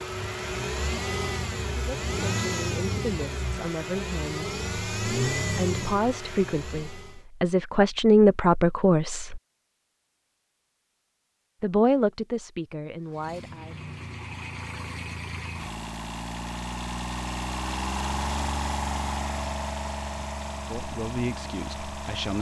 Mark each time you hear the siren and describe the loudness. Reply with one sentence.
The siren can't be heard in this clip.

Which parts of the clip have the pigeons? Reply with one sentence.
You can't hear the pigeons here.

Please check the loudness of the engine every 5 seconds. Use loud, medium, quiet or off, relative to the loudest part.
loud, loud, medium, loud, medium.